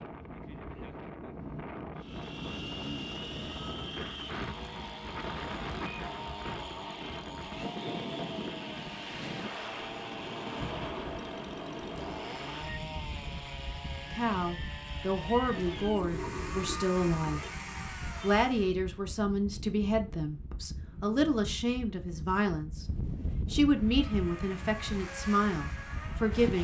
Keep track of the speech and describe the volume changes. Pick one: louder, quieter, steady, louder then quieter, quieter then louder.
steady.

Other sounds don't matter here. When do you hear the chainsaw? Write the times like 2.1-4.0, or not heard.
1.9-18.8, 23.6-26.5.